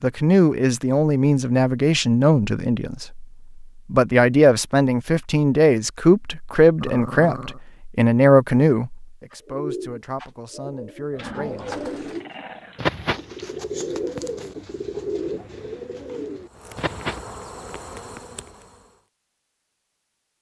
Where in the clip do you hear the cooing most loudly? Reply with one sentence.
The volume of the cooing peaks at 13 seconds.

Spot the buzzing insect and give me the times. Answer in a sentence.
The buzzing insect can be heard from 16.4 to 19.1 s.